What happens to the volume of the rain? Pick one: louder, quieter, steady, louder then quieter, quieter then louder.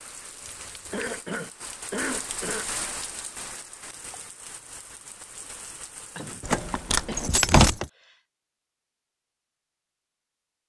louder then quieter.